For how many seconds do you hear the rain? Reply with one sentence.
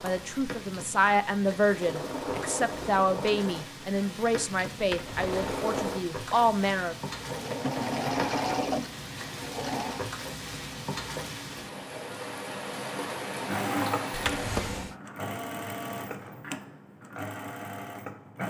You can hear the rain for 15 seconds altogether.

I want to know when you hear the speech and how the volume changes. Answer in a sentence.
The speech can be heard from 0.0 to 7.0 s, at a steady volume.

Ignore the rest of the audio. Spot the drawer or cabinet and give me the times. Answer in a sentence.
You can hear the drawer or cabinet from 4.8 to 5.5 s and from 14.1 to 14.9 s.